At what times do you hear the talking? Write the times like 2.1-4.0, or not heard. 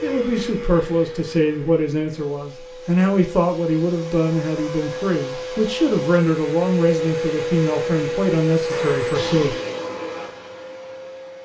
0.0-9.6.